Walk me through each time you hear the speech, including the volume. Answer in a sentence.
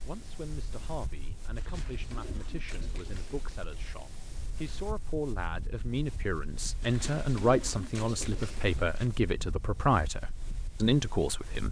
The speech can be heard from 0.0 to 11.6 s, getting louder.